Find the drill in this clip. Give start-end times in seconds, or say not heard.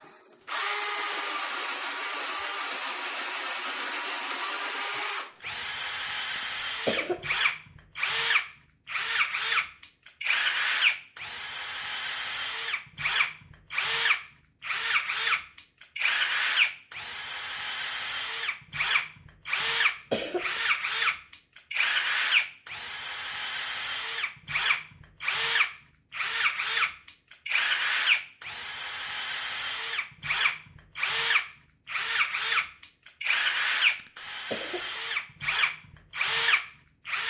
0.5-37.2.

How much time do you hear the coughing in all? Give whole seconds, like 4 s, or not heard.
3 s.